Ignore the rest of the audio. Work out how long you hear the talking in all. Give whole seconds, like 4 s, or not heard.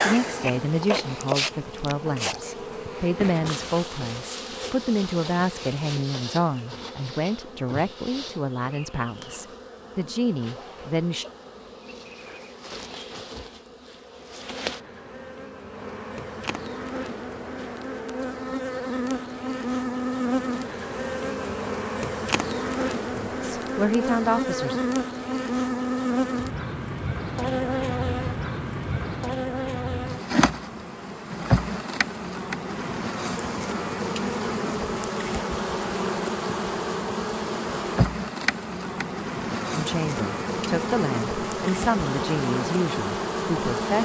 17 s.